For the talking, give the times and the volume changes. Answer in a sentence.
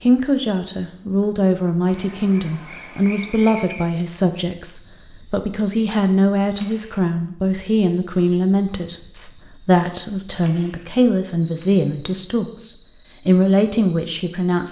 The talking can be heard from 0.0 to 14.6 s, at a steady volume.